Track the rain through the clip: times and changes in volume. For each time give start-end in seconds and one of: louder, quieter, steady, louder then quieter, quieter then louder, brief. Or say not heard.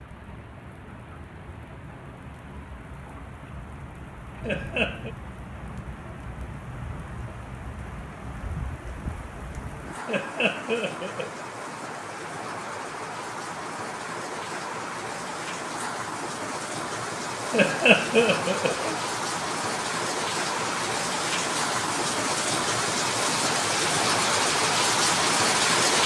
0.0-26.0 louder.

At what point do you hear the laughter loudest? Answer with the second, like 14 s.
18 s.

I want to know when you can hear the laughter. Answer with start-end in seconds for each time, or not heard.
4.4-5.1, 10.1-11.4, 17.5-19.0.